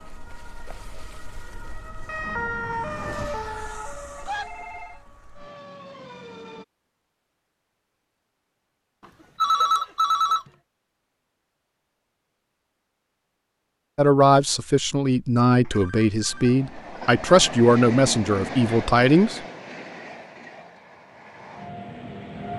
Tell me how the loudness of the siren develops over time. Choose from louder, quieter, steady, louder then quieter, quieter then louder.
louder then quieter.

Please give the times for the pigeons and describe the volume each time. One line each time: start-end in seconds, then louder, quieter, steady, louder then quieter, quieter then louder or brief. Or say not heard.
not heard.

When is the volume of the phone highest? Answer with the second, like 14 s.
10 s.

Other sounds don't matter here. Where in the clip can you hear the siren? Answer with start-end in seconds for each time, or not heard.
0.0-6.7.